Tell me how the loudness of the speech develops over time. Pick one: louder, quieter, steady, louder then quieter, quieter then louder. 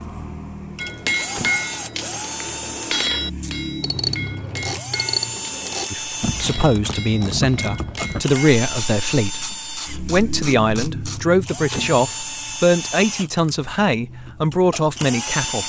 steady.